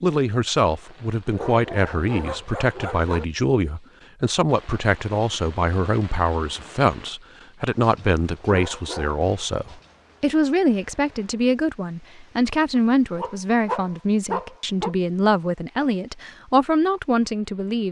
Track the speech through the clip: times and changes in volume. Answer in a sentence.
You can hear the speech from 0.0 to 17.8 s, at a steady volume.